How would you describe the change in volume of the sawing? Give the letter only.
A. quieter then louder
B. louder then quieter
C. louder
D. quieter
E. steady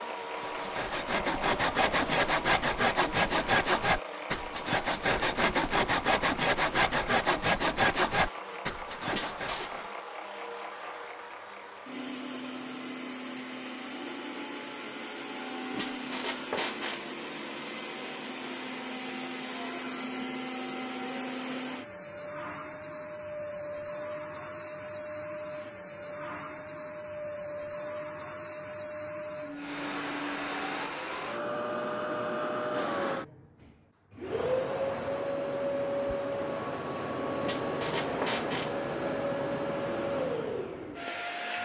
E.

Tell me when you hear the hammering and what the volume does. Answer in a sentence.
You can't hear the hammering here.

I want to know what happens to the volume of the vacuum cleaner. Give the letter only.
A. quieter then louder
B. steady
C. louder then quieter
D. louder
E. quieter
D.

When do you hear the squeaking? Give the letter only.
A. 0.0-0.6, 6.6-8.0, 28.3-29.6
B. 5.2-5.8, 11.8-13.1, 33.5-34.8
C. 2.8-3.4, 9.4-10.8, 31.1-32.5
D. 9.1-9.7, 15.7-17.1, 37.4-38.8
D.